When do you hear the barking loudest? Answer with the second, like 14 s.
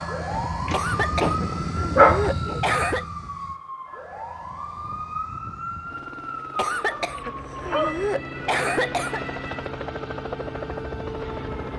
2 s.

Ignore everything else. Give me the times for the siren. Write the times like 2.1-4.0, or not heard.
0.0-11.7.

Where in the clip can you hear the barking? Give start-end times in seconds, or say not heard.
0.7-2.6, 7.0-8.1.